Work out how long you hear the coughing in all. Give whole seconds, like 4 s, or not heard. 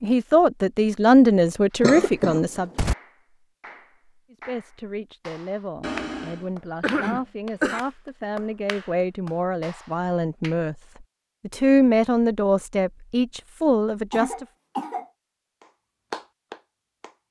4 s.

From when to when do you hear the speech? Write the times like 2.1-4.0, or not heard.
0.0-2.7, 4.3-10.8, 11.4-14.4.